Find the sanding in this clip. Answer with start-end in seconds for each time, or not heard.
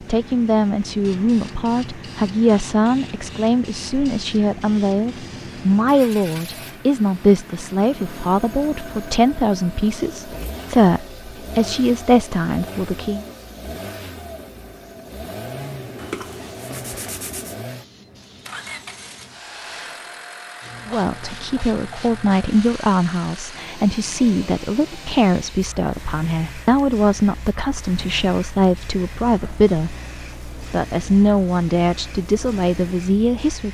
15.9-17.6.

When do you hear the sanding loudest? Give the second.
16 s.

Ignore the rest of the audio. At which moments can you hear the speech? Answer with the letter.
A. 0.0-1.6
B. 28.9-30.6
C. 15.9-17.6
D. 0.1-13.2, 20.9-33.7
D.